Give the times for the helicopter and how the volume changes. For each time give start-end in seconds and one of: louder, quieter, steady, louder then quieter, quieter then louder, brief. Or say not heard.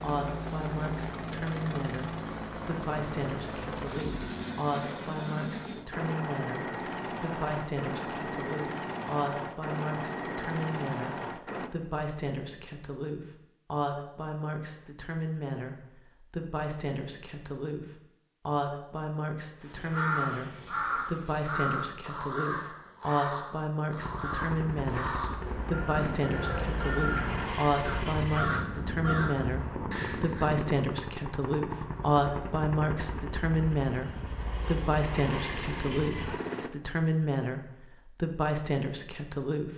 0.0-11.7 steady
23.9-36.7 steady.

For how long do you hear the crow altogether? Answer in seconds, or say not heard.
11 s.